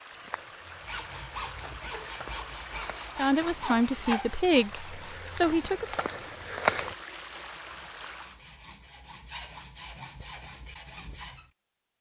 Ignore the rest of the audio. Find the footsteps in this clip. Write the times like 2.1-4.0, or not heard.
0.1-7.0.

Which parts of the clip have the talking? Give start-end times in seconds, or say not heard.
3.1-5.8.